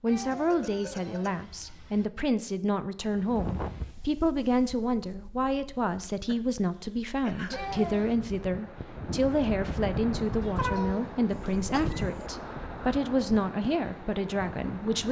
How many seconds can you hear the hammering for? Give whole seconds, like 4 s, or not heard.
not heard.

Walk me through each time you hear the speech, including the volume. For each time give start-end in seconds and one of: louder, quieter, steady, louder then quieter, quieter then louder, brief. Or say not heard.
0.0-15.0 steady.